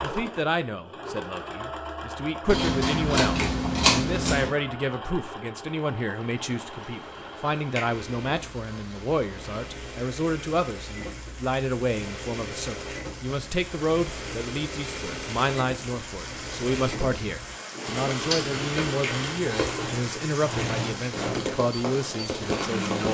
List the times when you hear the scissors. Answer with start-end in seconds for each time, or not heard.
2.5-4.5, 18.0-19.9.